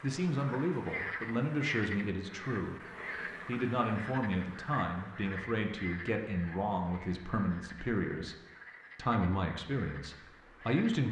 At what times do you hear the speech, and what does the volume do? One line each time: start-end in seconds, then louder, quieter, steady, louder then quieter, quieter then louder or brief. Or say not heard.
0.0-2.8 brief
3.5-8.3 steady
8.9-11.0 brief.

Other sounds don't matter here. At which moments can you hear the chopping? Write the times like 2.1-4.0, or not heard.
not heard.